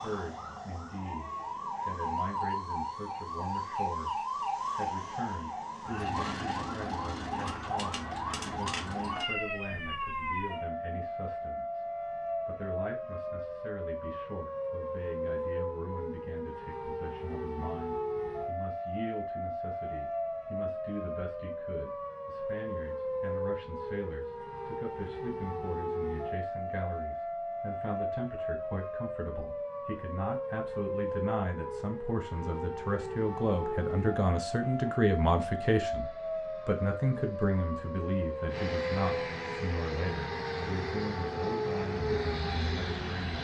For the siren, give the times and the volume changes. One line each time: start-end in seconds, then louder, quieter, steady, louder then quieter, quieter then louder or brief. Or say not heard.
0.0-43.3 steady.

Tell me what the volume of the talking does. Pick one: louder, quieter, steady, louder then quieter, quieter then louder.
louder.